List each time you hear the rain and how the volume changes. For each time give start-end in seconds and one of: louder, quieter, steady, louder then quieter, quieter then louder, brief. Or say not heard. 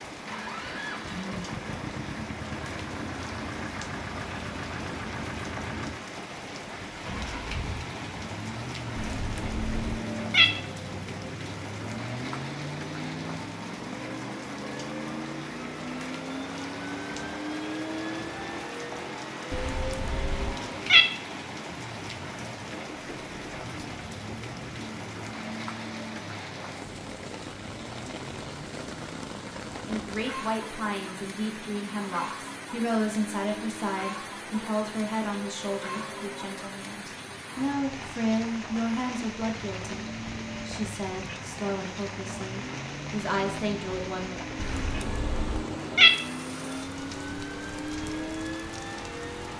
0.0-49.5 steady.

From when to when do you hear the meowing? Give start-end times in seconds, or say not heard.
8.9-10.4, 19.5-21.1, 44.5-46.1.